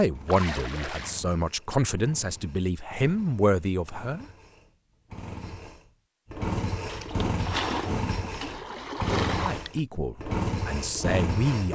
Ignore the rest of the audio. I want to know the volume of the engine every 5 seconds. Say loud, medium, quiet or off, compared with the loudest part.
quiet, loud, loud.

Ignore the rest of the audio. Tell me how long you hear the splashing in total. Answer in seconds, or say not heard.
4 s.